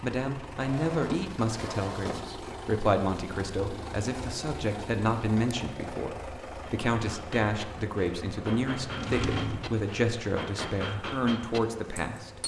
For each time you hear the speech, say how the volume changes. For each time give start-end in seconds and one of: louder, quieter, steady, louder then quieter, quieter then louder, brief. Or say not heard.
0.0-12.4 steady.